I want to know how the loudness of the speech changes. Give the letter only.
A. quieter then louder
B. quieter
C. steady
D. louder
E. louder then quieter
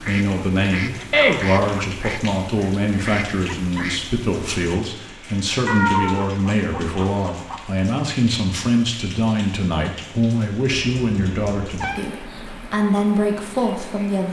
C.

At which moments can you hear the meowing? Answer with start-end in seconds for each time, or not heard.
1.1-1.6, 5.7-7.7, 10.7-12.1.